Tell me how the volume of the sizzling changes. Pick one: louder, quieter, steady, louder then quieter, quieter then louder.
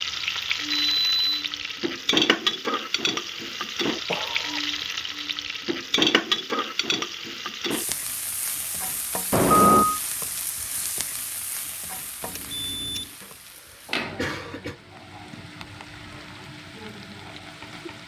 quieter.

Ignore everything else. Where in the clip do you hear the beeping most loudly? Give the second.
10 s.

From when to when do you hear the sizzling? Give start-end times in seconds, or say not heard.
0.0-18.0.